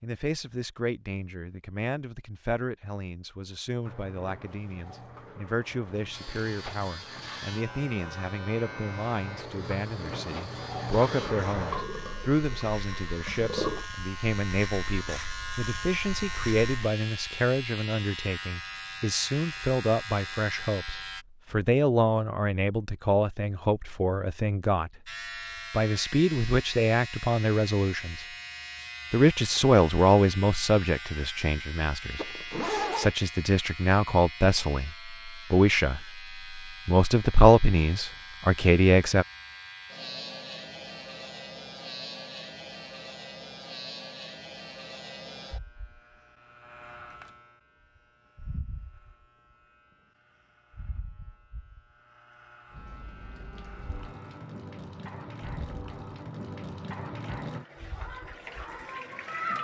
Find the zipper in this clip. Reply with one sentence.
You can hear the zipper from 32.1 to 33.1 s.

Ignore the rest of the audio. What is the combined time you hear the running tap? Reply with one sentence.
The running tap can be heard for 17 seconds in total.